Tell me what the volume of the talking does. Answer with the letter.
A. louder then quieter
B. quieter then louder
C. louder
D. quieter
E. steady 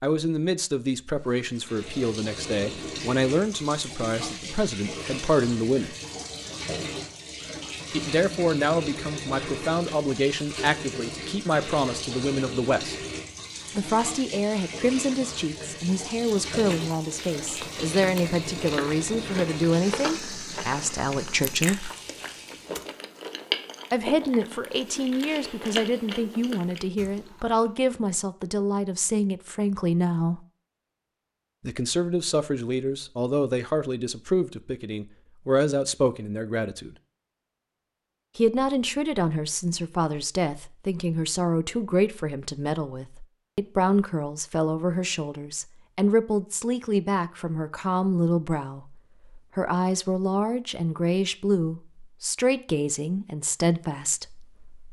E.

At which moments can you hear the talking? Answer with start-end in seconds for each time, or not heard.
0.0-6.0, 7.9-12.9, 13.8-21.9, 23.9-30.4, 31.6-37.0, 38.4-54.5.